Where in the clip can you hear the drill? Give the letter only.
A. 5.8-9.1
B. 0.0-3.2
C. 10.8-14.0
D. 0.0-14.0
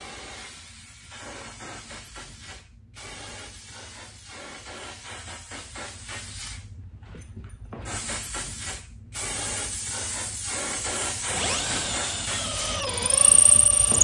C.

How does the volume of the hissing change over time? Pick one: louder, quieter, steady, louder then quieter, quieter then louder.
louder.